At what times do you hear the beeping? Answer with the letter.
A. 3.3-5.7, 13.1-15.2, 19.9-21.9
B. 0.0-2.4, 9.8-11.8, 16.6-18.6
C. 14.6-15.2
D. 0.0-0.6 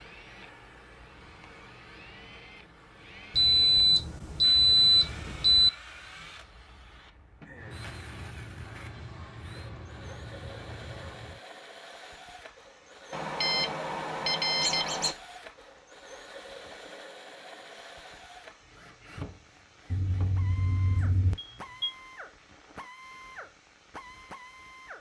A.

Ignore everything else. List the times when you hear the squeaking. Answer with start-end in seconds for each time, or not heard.
14.6-15.2.